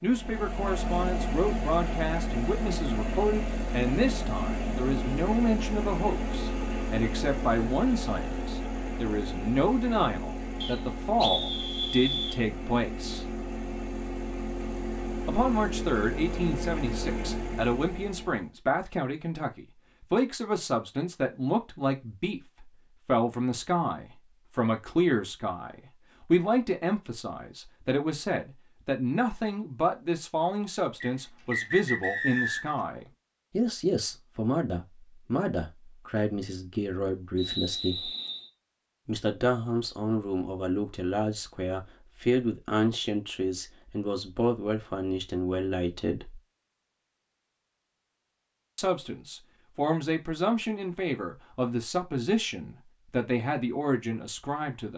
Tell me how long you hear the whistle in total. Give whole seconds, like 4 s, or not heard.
5 s.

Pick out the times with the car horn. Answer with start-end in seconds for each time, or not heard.
not heard.